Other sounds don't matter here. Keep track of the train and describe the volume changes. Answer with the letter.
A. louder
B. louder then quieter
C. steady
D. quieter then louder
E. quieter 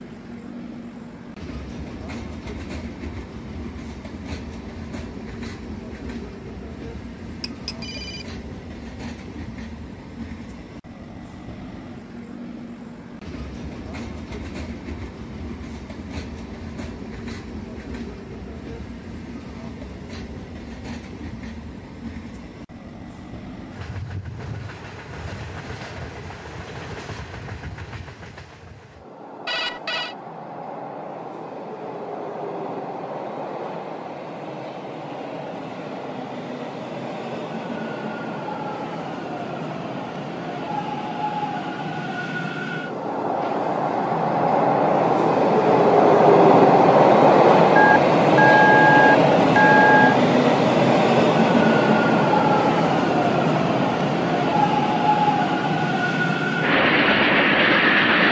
A.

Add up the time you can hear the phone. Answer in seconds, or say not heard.
4 s.